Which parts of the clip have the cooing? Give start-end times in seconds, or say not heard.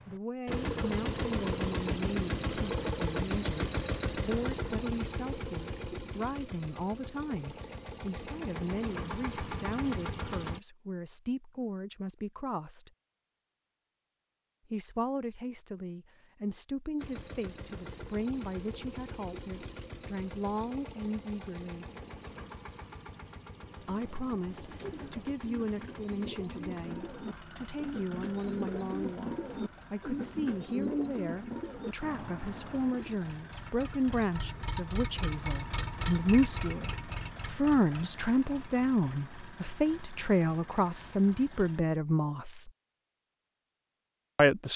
23.5-33.2.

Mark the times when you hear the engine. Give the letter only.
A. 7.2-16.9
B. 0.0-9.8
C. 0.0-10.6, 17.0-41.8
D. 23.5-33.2
C.